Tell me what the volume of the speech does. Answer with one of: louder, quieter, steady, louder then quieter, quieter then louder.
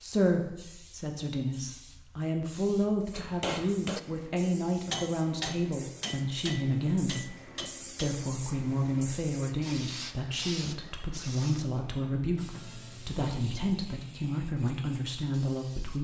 steady.